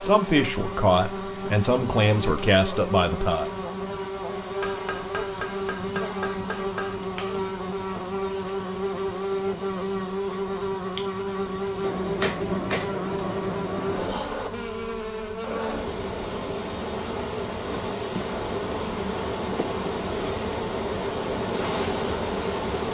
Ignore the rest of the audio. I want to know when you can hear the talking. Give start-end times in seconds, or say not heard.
0.0-3.5.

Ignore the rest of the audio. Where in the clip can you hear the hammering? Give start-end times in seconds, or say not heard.
4.6-7.5, 11.8-14.2.